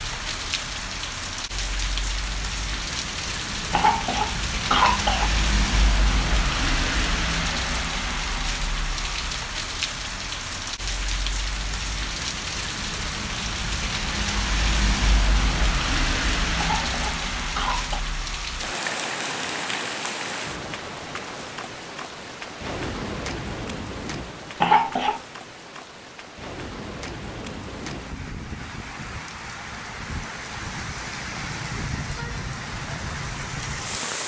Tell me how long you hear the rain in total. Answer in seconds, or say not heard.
34 s.